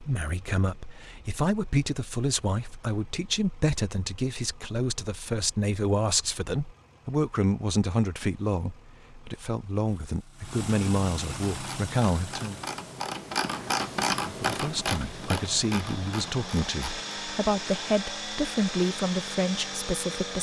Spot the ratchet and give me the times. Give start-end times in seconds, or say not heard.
11.5-17.1.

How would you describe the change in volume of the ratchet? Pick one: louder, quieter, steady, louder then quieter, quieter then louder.
louder then quieter.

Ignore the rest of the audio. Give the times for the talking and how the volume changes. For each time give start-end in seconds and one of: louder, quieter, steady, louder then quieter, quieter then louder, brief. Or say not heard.
0.0-12.6 steady
14.2-20.3 steady.